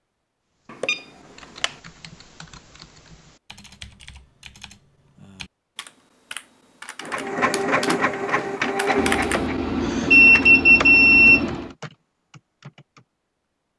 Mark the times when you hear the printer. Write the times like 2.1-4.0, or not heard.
7.0-10.5.